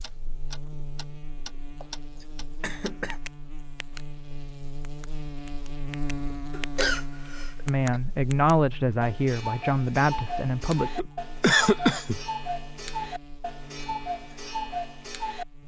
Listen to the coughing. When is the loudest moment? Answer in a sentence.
The loudest moment of the coughing is at 12 seconds.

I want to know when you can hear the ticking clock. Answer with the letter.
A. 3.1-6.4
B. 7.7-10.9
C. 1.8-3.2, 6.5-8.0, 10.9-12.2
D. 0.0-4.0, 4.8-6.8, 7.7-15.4
D.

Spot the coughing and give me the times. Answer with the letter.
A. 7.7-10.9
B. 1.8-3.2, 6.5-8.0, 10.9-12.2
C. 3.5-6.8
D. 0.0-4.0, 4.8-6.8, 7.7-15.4
B.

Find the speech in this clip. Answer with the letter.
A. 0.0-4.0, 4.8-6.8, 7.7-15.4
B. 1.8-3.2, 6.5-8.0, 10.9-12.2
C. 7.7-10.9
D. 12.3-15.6
C.